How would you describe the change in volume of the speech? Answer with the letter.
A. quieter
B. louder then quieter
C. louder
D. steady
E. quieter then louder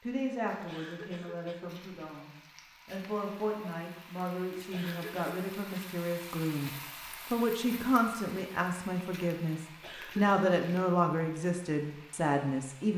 C.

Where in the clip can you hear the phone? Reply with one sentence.
You can't hear the phone here.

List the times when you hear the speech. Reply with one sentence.
You can hear the speech from 0.0 to 6.7 s and from 7.3 to 12.9 s.